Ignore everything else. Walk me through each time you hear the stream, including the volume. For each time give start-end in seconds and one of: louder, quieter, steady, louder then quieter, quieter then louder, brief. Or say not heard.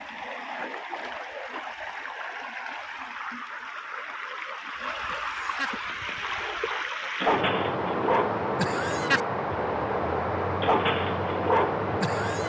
0.0-12.4 louder.